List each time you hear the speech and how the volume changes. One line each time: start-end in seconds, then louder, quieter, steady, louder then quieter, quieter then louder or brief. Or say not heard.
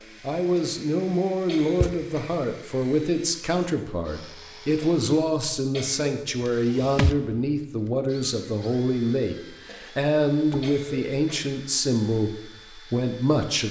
0.2-13.6 steady.